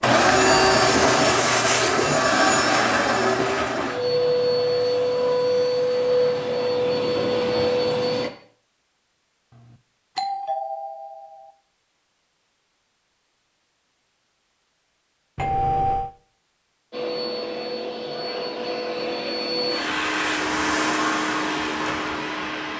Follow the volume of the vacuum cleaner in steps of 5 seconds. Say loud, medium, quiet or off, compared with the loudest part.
loud, loud, off, medium, medium.